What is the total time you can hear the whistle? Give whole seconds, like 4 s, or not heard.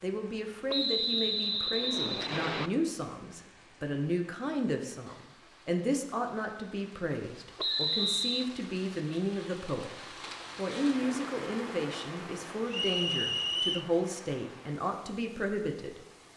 4 s.